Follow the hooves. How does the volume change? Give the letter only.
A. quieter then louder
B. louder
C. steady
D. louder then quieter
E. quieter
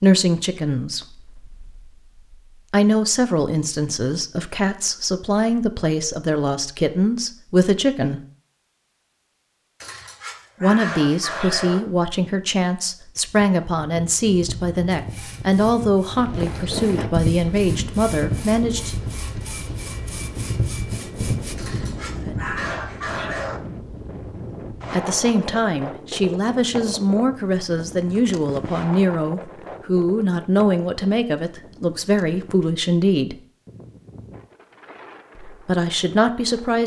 A.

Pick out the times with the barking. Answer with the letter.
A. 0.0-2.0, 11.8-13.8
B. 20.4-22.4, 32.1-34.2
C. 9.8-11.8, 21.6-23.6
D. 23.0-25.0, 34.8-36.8
C.